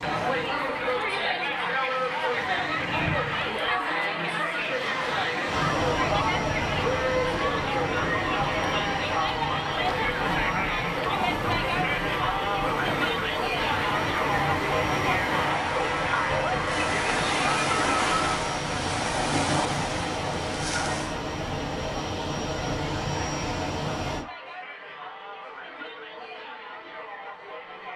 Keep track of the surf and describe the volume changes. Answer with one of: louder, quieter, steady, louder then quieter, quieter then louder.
louder.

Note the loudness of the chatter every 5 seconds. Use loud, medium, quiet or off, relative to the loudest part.
loud, loud, loud, loud, quiet, quiet.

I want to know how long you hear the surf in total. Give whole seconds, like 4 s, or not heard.
21 s.